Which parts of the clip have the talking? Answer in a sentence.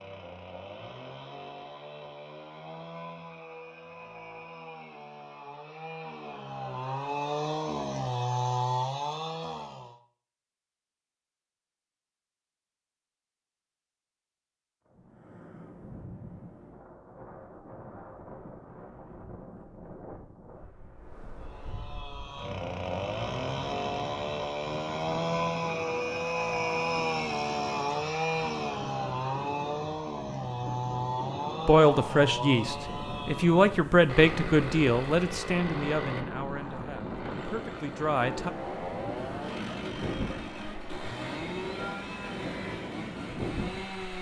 You can hear the talking from 31.6 to 38.5 s.